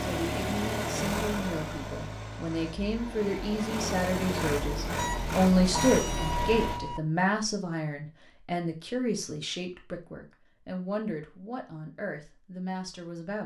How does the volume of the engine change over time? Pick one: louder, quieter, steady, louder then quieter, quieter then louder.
quieter then louder.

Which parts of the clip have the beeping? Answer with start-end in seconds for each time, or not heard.
5.0-7.0.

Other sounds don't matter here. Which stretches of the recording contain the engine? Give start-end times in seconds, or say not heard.
0.0-6.8.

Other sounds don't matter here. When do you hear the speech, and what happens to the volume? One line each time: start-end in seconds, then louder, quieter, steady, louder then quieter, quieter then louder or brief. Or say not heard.
0.0-13.4 louder then quieter.